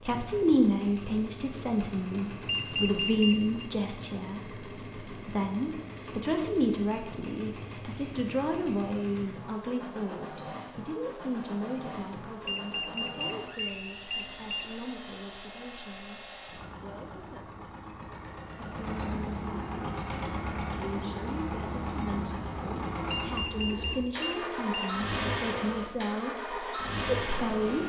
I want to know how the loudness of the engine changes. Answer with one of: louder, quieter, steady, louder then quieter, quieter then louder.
louder.